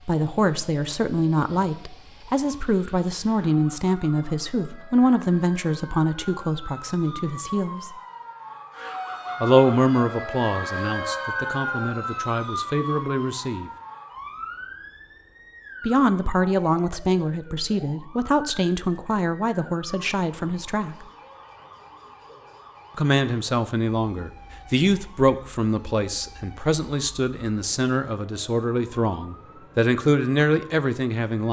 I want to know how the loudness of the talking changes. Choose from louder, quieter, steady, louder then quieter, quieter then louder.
steady.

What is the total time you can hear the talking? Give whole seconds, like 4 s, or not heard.
26 s.